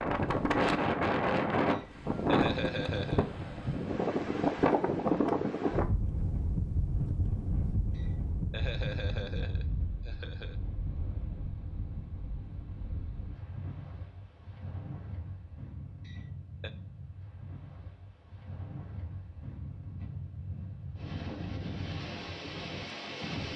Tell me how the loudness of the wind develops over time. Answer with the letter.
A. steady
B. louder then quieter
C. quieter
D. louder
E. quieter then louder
E.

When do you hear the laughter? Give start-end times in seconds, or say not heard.
1.7-3.3, 8.0-10.6, 16.1-16.7.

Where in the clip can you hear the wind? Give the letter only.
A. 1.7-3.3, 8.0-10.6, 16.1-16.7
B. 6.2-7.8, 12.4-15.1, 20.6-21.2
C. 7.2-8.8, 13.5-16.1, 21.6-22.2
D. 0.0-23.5
D.